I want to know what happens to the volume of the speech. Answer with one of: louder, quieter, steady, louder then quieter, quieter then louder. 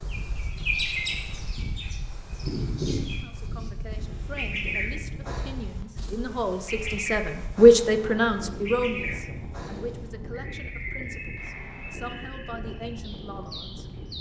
louder then quieter.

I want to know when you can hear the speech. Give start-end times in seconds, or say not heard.
3.2-13.8.